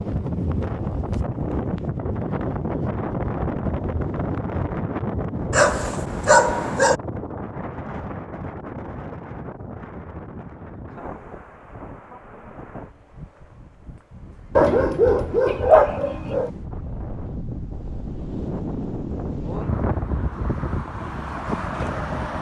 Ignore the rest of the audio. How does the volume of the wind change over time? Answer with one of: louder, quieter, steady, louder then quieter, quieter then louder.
quieter then louder.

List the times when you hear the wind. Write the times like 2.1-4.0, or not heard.
0.0-22.3.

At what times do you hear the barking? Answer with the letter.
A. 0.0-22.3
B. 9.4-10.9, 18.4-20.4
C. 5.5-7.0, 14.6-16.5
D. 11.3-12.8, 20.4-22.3
C.